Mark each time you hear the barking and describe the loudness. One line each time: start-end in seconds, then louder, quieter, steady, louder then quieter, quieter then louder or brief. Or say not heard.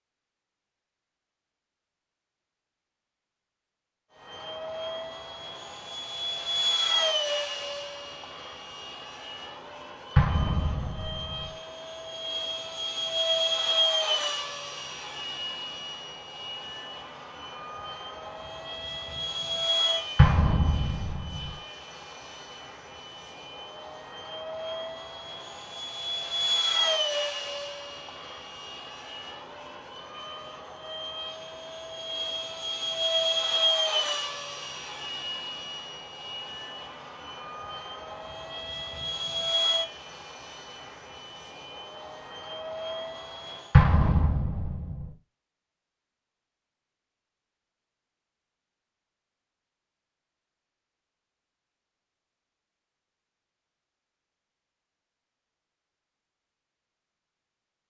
not heard.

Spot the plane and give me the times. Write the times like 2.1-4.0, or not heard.
4.2-43.8.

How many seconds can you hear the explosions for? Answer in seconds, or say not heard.
4 s.